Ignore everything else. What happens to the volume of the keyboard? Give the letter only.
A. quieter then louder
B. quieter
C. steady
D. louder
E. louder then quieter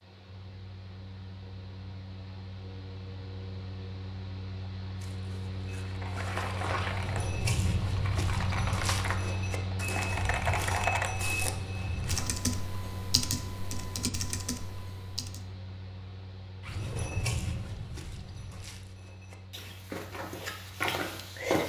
E.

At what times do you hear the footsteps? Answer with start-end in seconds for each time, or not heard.
5.0-12.2, 16.6-21.6.